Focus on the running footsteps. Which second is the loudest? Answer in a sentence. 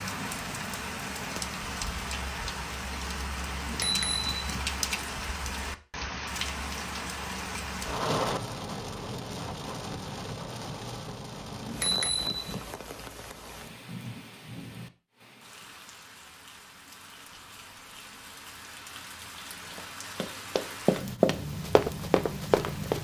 The volume of the running footsteps peaks at 21 seconds.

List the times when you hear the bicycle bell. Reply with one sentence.
You can hear the bicycle bell from 3.6 to 5.2 s and from 11.6 to 12.6 s.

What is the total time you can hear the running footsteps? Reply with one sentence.
The running footsteps can be heard for 3 seconds in total.